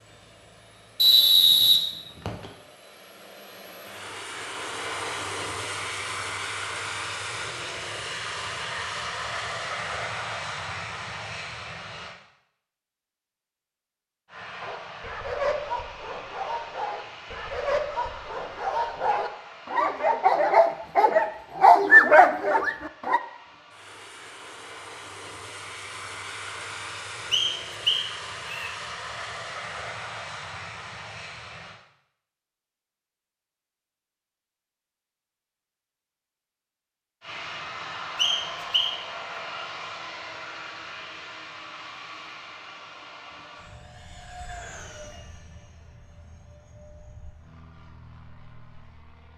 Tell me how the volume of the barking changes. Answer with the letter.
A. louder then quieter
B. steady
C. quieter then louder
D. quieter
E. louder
E.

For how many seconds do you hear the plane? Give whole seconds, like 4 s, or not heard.
42 s.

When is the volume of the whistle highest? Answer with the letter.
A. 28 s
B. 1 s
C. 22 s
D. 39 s
B.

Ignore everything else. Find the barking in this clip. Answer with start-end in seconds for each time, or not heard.
14.6-23.2.